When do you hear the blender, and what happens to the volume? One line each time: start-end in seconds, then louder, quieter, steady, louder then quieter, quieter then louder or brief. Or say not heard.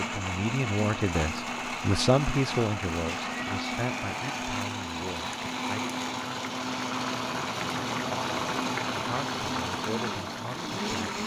0.0-11.2 steady.